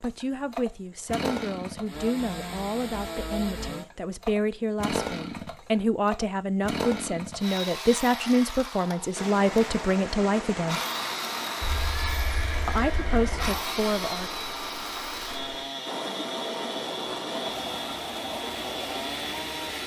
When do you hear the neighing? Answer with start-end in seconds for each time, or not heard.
11.6-13.7.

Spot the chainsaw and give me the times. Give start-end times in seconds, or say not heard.
0.0-19.8.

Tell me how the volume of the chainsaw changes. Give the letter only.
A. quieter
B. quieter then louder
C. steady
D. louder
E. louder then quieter
C.